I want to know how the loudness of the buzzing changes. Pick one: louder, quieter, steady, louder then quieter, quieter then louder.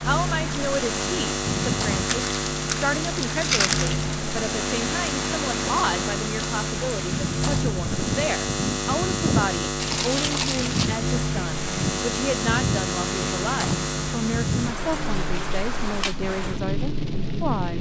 steady.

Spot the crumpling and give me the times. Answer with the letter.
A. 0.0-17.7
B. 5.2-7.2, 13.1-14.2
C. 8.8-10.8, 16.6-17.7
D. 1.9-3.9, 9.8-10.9
D.